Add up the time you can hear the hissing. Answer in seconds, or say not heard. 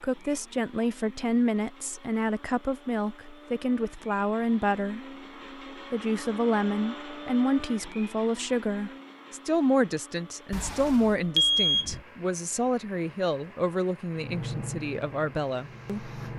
2 s.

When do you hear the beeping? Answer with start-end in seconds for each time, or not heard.
10.5-12.0.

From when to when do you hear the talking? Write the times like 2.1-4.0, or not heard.
0.0-5.0, 5.9-16.1.